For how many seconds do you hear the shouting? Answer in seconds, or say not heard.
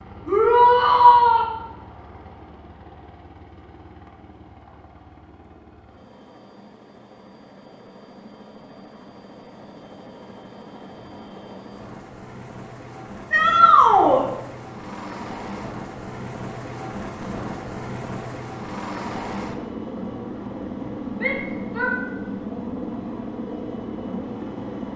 3 s.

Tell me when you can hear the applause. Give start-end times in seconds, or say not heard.
not heard.